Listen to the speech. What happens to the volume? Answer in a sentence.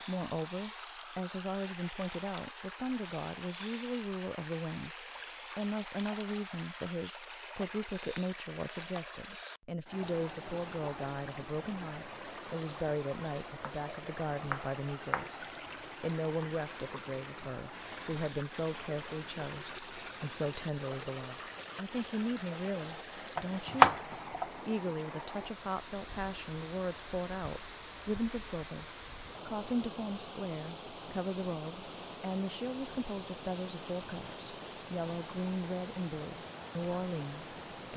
The volume of the speech stays about the same.